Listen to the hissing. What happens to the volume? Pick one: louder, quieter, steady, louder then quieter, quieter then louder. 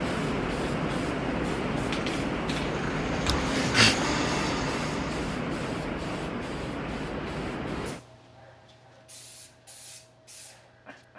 quieter.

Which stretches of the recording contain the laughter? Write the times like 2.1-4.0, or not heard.
3.2-4.0.